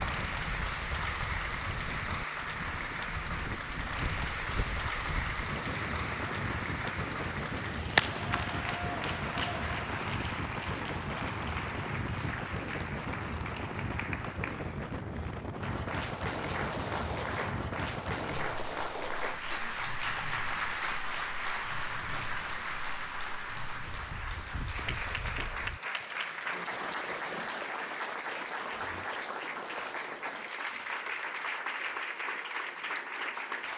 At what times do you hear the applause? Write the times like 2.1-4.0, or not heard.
0.0-33.7.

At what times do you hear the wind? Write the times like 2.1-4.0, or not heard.
0.0-25.8.